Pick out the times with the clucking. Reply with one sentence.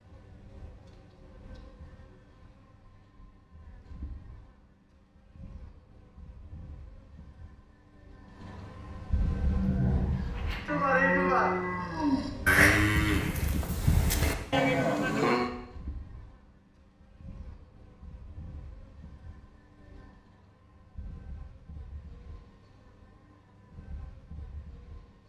The clucking can't be heard in this clip.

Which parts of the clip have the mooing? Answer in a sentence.
The mooing can be heard from 9.3 to 15.5 s.